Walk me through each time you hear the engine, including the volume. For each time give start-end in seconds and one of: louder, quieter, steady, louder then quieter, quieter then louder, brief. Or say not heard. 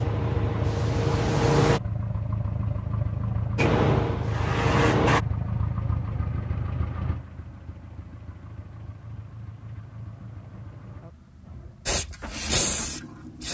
0.0-13.4 quieter.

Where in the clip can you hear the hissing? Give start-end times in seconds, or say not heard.
0.0-1.8, 3.5-5.2, 11.8-13.4.